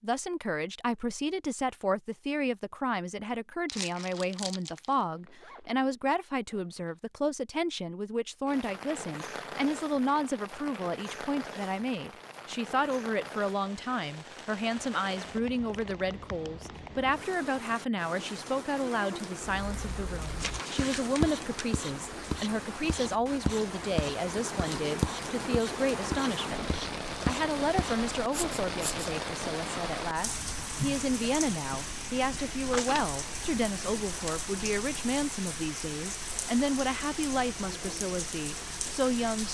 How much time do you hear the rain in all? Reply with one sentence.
You can hear the rain for 31 seconds altogether.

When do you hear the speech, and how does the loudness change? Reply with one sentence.
You can hear the speech from 0.0 to 39.5 s, at a steady volume.